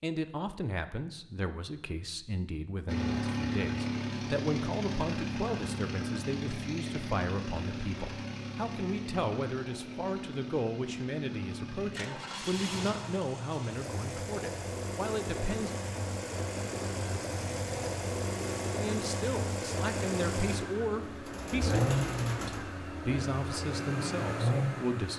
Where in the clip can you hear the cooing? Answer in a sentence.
The cooing can be heard from 21.1 to 22.8 s.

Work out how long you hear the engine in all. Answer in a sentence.
The engine can be heard for 22 seconds in total.